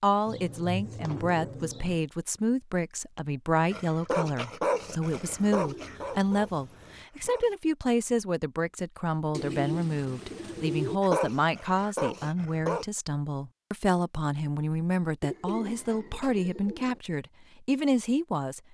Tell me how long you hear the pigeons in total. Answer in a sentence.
The pigeons can be heard for 7 seconds in total.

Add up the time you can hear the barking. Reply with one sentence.
The barking can be heard for 6 seconds in total.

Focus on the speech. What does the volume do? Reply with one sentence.
The volume of the speech stays about the same.